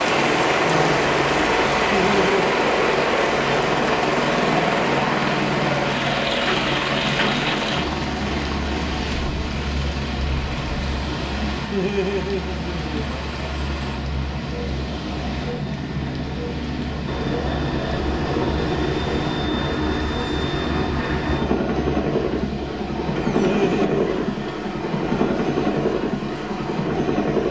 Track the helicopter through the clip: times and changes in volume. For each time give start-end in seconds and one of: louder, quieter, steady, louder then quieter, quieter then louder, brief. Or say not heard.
0.0-27.4 quieter then louder.